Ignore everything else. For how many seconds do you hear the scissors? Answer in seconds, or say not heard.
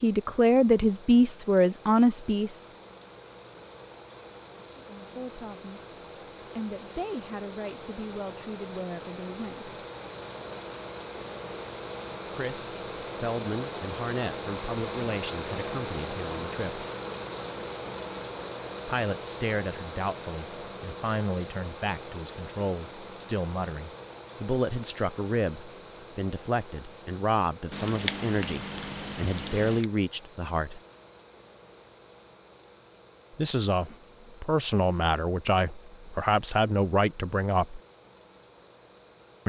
2 s.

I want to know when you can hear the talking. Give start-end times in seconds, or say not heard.
0.0-2.6, 4.8-6.0, 6.5-9.8, 12.3-16.9, 18.9-30.8, 33.4-37.8.